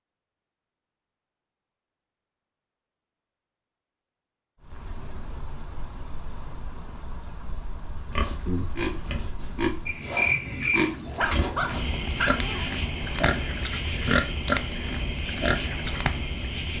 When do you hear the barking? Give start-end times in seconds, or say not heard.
11.1-12.8.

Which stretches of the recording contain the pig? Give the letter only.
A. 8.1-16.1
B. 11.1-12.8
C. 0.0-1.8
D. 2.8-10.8
A.